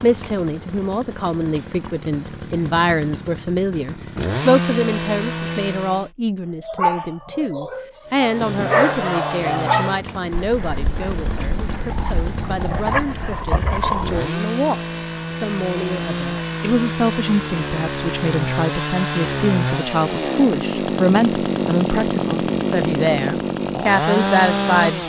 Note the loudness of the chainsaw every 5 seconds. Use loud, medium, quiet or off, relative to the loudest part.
medium, medium, medium, loud, loud.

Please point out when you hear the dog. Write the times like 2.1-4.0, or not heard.
6.6-14.3.